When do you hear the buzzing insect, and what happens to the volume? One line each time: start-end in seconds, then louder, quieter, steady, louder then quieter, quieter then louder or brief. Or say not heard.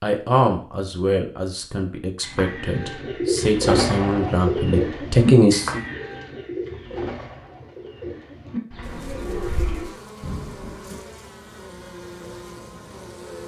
8.8-13.4 steady.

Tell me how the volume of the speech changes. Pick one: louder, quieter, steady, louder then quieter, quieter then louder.
quieter then louder.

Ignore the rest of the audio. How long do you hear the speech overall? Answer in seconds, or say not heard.
6 s.